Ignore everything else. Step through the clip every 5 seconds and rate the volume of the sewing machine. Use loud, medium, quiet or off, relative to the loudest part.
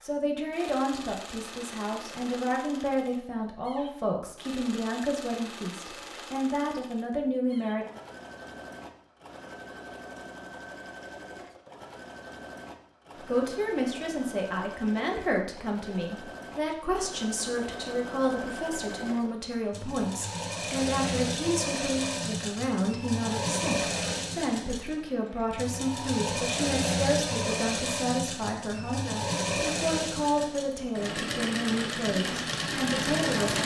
quiet, quiet, quiet, medium, loud, loud, loud.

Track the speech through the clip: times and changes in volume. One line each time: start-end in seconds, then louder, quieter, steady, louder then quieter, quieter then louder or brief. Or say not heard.
0.0-7.8 steady
13.2-33.6 steady.